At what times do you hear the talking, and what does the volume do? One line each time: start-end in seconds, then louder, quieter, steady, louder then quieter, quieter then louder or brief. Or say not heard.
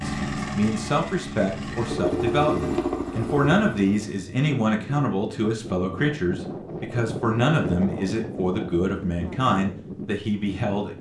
0.0-10.9 steady.